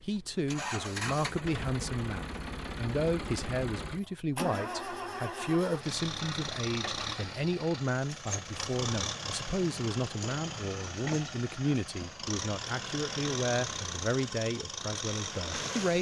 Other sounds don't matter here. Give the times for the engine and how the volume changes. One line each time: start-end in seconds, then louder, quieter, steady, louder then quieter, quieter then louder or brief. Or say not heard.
0.0-15.9 steady.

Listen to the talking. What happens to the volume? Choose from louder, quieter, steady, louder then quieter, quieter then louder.
steady.